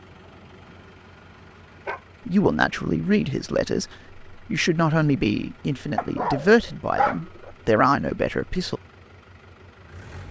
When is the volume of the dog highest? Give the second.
7 s.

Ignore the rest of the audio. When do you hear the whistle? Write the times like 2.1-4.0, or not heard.
not heard.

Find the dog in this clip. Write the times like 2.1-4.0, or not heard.
0.7-2.0, 6.0-7.5.